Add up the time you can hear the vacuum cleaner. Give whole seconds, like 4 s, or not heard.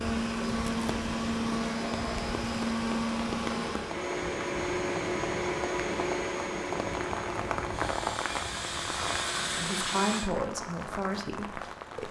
10 s.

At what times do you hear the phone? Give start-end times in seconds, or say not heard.
not heard.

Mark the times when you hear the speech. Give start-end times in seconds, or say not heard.
9.6-12.0.